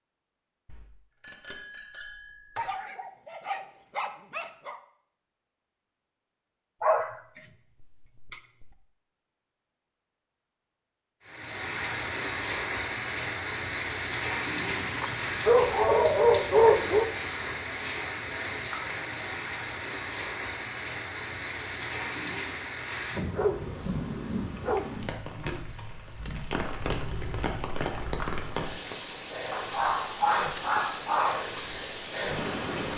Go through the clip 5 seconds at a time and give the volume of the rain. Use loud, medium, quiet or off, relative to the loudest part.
off, off, loud, loud, loud, loud, loud.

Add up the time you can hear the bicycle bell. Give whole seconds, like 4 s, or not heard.
2 s.